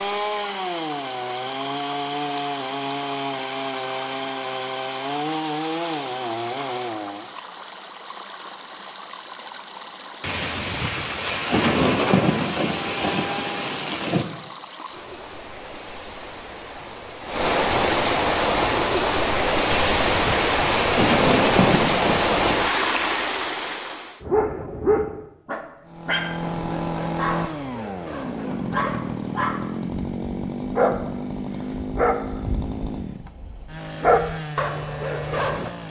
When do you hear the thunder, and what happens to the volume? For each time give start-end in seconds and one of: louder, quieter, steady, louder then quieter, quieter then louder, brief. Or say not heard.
10.2-14.2 louder then quieter
19.6-22.6 brief.